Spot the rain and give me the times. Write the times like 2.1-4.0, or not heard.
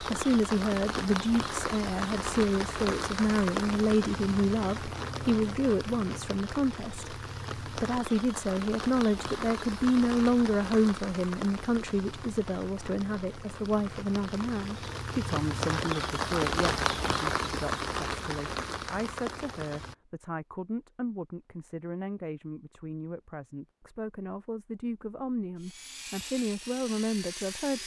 0.0-19.9.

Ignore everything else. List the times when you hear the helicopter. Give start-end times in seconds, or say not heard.
25.6-27.8.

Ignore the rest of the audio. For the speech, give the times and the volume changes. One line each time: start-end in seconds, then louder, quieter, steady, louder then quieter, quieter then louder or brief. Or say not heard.
0.0-27.8 quieter.